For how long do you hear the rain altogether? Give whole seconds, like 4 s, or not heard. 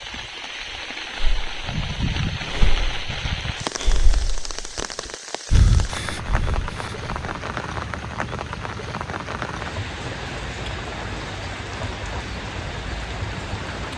14 s.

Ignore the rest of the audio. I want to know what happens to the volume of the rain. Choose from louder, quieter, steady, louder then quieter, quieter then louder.
steady.